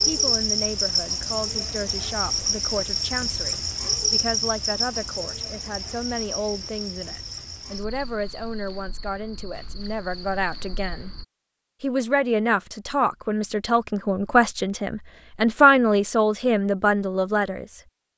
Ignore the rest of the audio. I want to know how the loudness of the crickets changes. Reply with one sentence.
The loudness of the crickets goes down.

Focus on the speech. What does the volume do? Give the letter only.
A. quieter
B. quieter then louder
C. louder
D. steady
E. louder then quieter
C.